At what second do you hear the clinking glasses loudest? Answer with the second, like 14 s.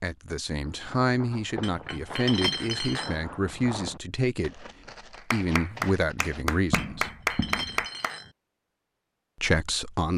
2 s.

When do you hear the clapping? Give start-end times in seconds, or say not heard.
5.2-8.2.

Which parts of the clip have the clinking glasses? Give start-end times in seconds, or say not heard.
1.6-3.2, 6.7-8.3.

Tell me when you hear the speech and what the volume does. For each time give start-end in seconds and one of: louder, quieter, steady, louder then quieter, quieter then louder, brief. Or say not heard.
0.0-4.7 steady
5.3-7.1 brief
9.3-10.1 brief.